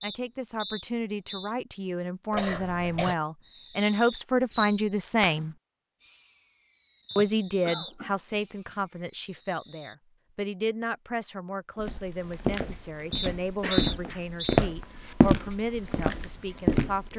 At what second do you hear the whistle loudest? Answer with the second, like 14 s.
14 s.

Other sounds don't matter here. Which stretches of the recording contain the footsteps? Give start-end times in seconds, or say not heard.
11.8-17.1.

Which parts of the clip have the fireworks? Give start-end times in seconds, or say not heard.
3.4-9.9.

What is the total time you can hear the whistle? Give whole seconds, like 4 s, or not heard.
4 s.